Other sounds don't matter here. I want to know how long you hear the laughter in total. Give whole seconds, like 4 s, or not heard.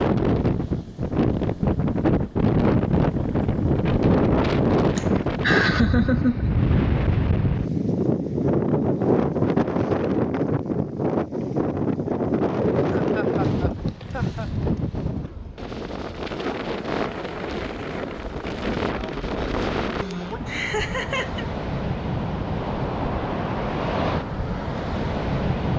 4 s.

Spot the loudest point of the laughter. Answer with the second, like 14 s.
6 s.